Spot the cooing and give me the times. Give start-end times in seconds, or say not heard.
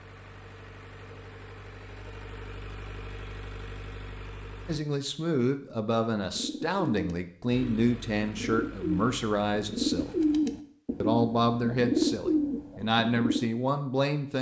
6.3-13.4.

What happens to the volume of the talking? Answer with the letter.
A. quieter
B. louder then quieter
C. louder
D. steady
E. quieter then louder
D.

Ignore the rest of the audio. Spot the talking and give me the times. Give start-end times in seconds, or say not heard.
4.7-10.2, 11.0-14.3.